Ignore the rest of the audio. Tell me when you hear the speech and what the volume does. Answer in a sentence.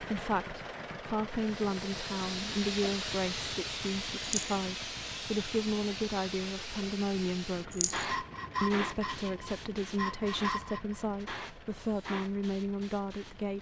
You can hear the speech from 0.0 to 13.5 s, at a steady volume.